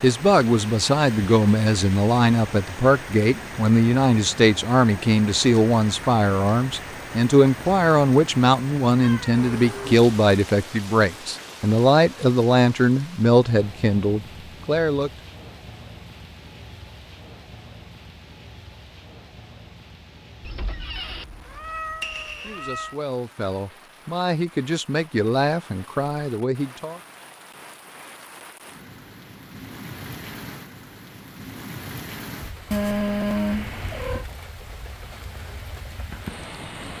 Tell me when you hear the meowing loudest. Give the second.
33 s.